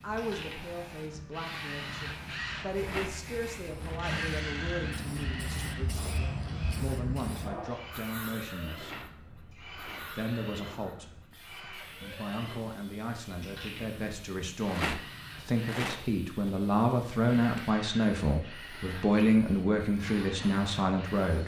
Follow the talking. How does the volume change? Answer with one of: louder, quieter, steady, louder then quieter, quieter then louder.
louder.